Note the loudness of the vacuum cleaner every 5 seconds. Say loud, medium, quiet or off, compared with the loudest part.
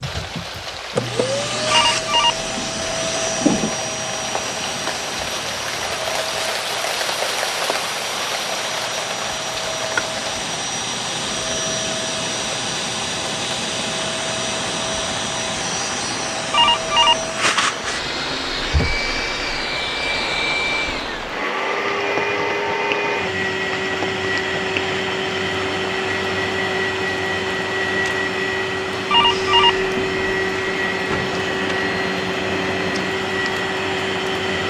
loud, medium, loud, loud, loud, loud, loud.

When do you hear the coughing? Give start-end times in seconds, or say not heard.
not heard.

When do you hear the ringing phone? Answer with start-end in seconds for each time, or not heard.
1.7-3.7, 16.5-17.1, 29.1-30.4.